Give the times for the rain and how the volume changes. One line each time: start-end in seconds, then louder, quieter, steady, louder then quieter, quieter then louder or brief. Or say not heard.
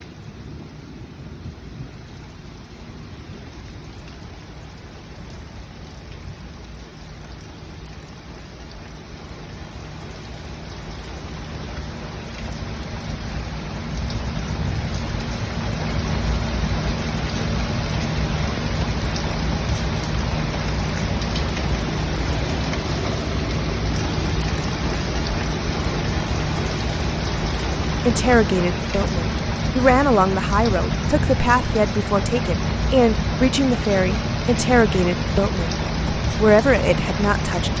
0.0-37.7 louder.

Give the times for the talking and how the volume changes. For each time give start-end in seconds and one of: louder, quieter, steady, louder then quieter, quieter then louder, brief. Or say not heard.
28.1-37.7 steady.